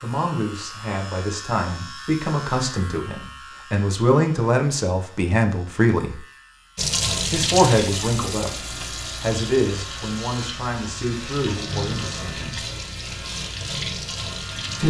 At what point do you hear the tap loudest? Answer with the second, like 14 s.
7 s.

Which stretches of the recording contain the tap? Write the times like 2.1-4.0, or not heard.
6.8-14.8.